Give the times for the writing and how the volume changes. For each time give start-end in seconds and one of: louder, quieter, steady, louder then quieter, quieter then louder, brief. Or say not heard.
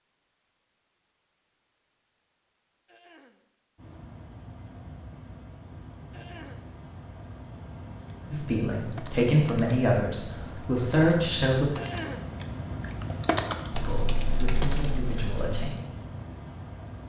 not heard.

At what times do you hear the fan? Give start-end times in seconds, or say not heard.
3.8-17.0.